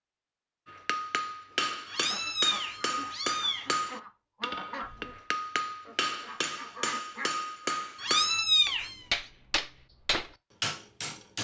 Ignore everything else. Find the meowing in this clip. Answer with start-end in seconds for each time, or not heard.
1.9-3.8, 8.0-9.0.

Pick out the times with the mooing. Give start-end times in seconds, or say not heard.
not heard.